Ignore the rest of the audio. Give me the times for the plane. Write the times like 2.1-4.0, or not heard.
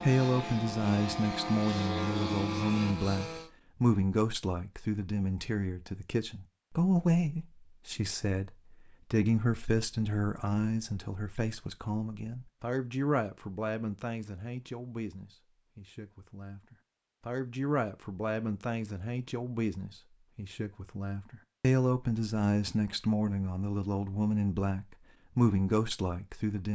0.0-3.5.